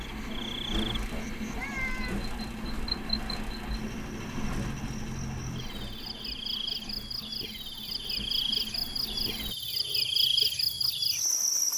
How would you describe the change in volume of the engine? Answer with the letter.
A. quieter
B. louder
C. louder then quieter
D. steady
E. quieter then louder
A.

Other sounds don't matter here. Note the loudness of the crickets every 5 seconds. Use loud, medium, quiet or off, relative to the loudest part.
quiet, medium, loud.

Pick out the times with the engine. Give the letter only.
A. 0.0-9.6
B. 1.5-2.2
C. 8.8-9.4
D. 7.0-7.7
A.